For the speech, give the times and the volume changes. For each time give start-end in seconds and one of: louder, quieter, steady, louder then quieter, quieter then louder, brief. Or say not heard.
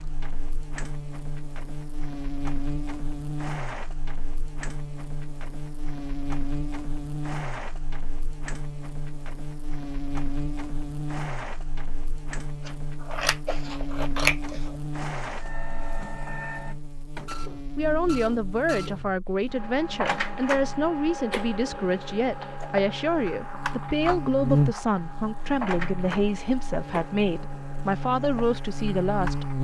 17.8-29.4 steady.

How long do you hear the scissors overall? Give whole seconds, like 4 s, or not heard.
2 s.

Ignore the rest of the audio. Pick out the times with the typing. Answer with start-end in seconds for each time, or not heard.
not heard.